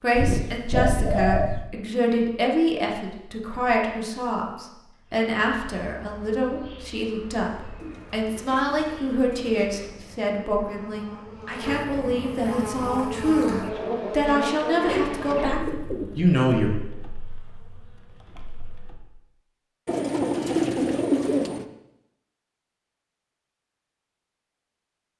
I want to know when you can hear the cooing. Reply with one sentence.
You can hear the cooing from 0.1 to 1.7 s, from 7.8 to 10.2 s, from 14.8 to 16.4 s and from 19.9 to 21.6 s.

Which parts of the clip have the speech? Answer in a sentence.
You can hear the speech from 0.0 to 16.8 s.